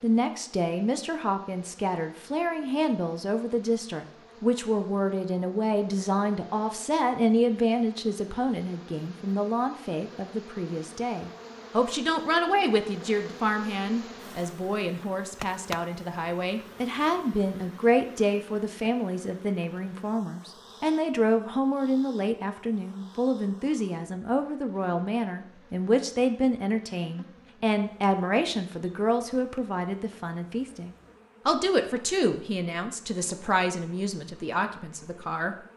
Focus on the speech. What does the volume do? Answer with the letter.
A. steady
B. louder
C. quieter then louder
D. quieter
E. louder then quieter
A.